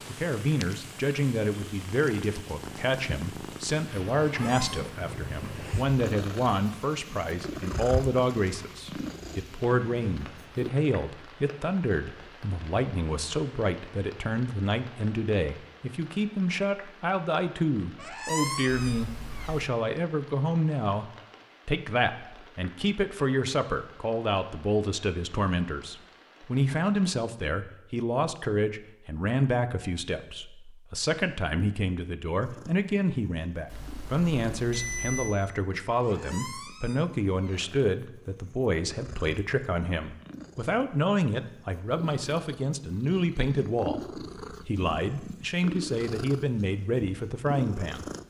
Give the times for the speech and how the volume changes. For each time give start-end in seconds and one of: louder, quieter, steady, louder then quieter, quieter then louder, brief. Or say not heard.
0.1-48.0 steady.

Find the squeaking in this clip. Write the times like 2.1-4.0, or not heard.
4.3-4.9, 17.9-19.6, 36.0-37.6.